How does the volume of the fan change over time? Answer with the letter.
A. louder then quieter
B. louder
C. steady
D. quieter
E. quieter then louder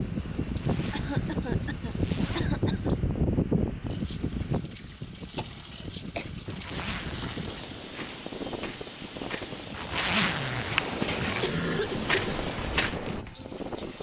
D.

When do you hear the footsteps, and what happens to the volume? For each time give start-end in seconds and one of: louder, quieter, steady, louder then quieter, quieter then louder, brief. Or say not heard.
6.8-13.2 louder.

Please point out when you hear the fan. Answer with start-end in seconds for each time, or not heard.
0.0-13.9.